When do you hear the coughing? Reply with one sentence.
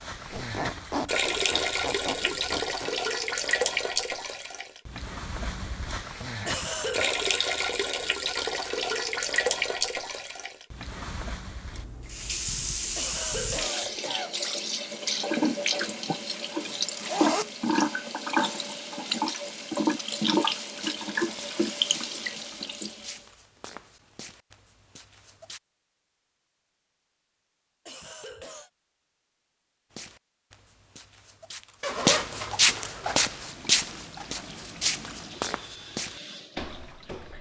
The coughing can be heard from 6.5 to 7.2 s, from 12.9 to 14.3 s and from 27.9 to 28.7 s.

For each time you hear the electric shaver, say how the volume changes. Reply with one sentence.
The electric shaver can't be heard in this clip.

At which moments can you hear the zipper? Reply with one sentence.
You can hear the zipper from 0.3 to 3.0 s, from 16.5 to 17.7 s and from 31.8 to 33.2 s.